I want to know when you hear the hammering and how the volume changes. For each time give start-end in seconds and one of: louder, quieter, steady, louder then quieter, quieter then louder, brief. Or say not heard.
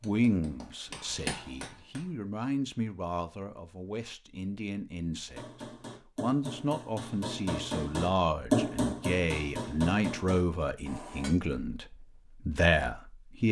0.0-2.1 brief
5.3-11.3 louder then quieter.